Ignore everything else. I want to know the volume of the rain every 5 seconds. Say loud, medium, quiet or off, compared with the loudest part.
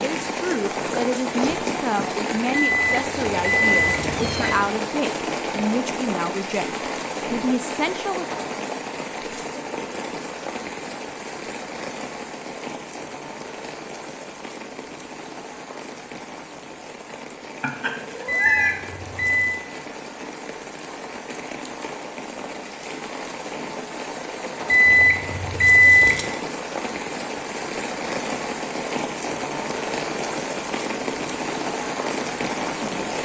loud, loud, medium, medium, medium, loud, loud.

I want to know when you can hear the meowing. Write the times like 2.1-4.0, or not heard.
3.7-4.7, 17.6-18.8.